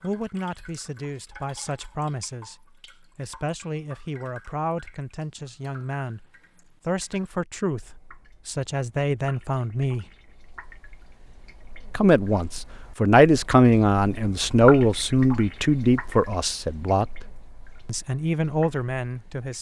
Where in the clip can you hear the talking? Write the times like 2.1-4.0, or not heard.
0.0-6.2, 6.8-10.1, 11.9-17.2, 17.9-19.5.